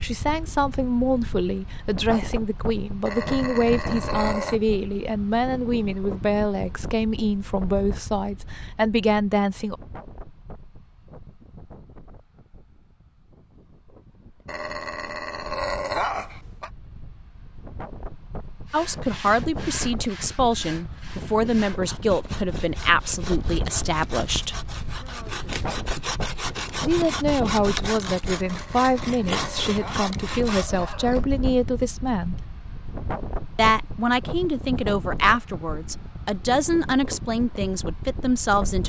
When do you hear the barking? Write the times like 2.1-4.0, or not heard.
3.0-4.6, 14.4-16.7, 28.4-31.2.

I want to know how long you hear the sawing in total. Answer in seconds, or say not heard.
12 s.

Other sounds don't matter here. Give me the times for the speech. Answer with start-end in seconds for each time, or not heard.
0.0-9.8, 18.7-24.6, 26.8-32.4, 33.5-38.8.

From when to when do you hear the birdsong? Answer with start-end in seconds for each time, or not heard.
not heard.